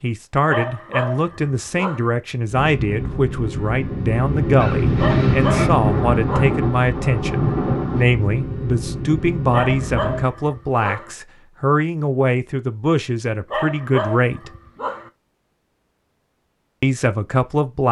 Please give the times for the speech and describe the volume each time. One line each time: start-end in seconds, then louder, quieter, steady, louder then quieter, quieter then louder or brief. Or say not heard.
0.0-14.5 steady
16.8-17.8 brief.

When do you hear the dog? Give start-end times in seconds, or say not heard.
0.5-2.1, 5.0-6.6, 9.5-11.1, 13.5-15.1.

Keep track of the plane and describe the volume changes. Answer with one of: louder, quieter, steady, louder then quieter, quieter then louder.
louder then quieter.